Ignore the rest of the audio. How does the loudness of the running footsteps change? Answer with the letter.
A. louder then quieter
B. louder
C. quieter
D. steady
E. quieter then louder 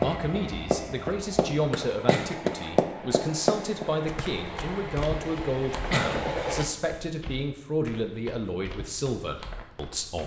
C.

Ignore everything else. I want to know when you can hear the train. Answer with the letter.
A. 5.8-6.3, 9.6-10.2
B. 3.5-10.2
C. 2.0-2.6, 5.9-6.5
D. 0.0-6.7
D.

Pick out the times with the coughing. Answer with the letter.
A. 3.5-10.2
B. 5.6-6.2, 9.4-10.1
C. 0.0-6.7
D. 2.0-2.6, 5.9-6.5
D.